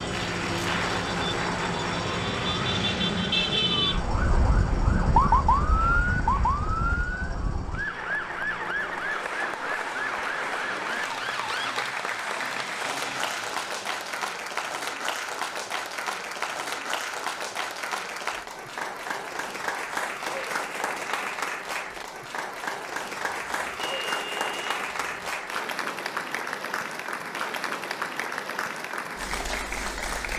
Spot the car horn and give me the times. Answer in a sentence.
The car horn can be heard from 23.3 to 25.3 s.